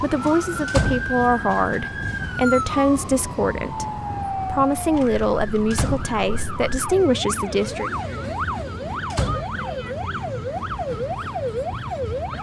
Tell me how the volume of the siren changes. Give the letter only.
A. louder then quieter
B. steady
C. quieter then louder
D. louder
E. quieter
C.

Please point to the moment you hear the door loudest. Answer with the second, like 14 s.
1 s.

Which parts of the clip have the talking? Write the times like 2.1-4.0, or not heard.
0.0-7.9.